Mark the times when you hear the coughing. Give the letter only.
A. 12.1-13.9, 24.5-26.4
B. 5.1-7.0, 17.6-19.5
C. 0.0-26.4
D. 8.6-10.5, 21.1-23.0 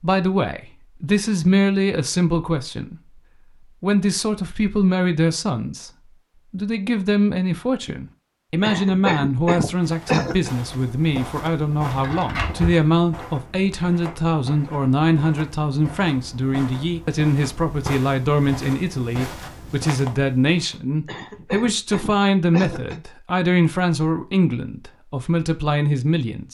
D.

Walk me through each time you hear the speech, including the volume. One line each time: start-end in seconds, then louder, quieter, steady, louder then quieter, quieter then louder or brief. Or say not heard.
0.0-26.4 steady.